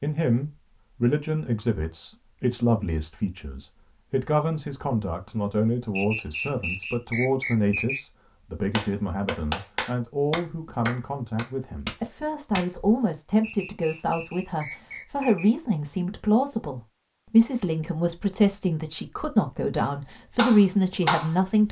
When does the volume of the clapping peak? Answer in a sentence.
The loudest moment of the clapping is at 21 seconds.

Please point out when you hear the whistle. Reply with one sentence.
The whistle can be heard from 6.0 to 8.0 s and from 13.4 to 15.5 s.